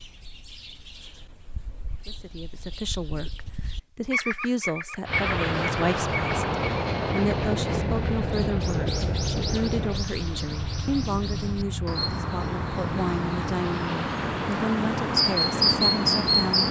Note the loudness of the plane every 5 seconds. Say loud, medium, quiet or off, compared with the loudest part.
off, loud, medium, medium.